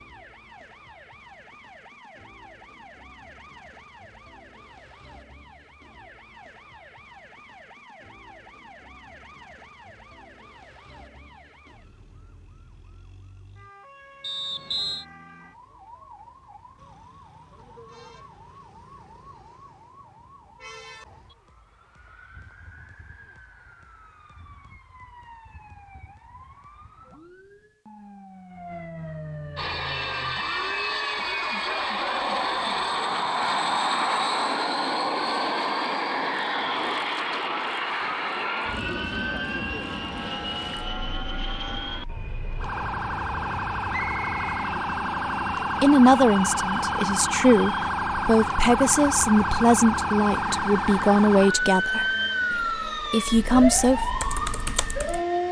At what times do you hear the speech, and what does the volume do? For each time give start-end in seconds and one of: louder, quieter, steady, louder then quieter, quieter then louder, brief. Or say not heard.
45.8-54.0 steady.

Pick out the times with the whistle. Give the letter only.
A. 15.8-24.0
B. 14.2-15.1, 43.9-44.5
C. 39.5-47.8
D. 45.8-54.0
B.